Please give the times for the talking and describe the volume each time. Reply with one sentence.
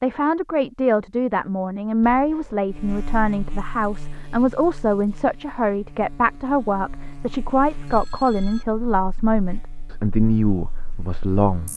The talking can be heard from 0.0 to 11.7 s, at a steady volume.